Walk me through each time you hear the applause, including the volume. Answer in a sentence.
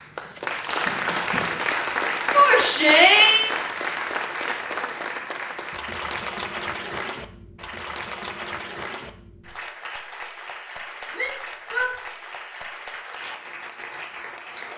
The applause can be heard from 0.0 to 14.7 s, getting quieter.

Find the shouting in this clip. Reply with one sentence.
The shouting can be heard from 2.3 to 3.5 s and from 11.1 to 11.9 s.